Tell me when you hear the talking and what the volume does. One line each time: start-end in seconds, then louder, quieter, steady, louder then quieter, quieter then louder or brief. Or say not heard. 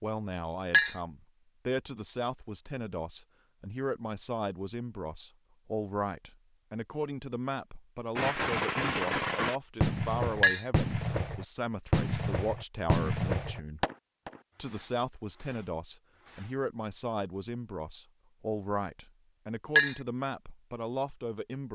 0.0-13.8 steady
14.6-21.7 steady.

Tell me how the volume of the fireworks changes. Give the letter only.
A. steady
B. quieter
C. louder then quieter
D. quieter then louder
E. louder
B.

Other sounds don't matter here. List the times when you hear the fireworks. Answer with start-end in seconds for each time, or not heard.
8.2-16.6.